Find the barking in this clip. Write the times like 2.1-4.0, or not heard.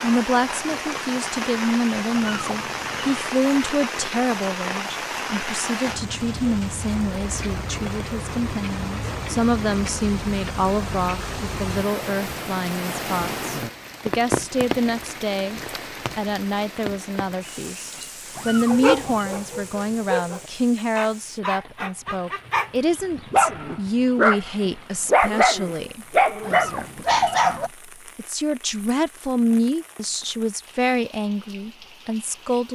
18.6-22.7, 23.3-27.7.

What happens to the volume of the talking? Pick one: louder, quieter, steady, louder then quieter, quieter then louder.
steady.